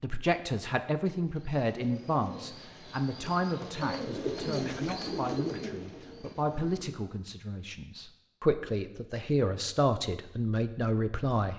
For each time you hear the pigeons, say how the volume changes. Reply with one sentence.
You can hear the pigeons from 1.1 to 7.0 s, getting louder then quieter.